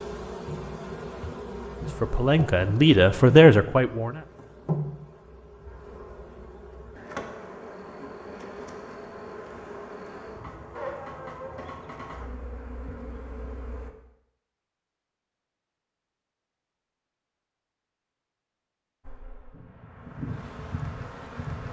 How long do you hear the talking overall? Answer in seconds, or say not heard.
2 s.